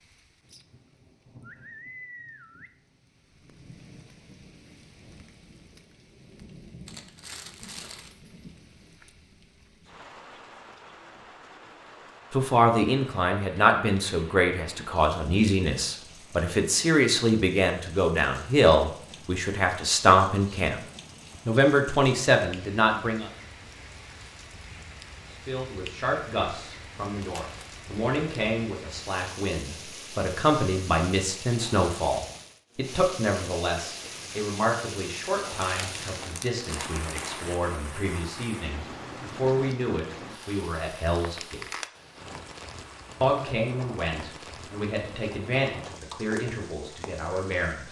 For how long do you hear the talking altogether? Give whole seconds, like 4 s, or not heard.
31 s.